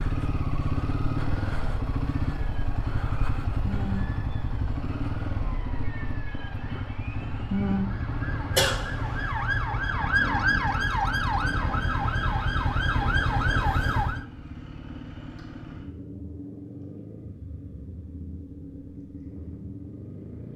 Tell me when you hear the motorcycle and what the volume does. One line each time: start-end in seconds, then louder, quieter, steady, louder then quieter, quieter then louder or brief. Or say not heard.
0.0-20.5 quieter.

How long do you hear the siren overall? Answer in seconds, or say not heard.
12 s.